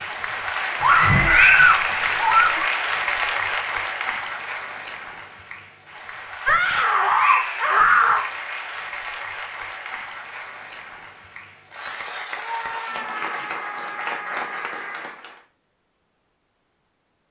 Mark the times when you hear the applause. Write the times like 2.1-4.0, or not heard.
0.0-15.4.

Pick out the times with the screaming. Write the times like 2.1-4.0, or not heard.
0.8-2.7, 6.5-8.2, 12.3-15.1.